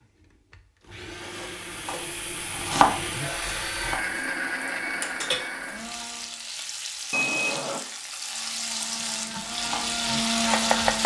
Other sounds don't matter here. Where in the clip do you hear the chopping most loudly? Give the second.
3 s.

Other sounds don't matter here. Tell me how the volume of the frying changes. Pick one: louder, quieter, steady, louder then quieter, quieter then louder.
louder.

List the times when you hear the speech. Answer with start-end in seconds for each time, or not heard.
not heard.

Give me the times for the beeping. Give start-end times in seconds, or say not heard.
7.1-7.8.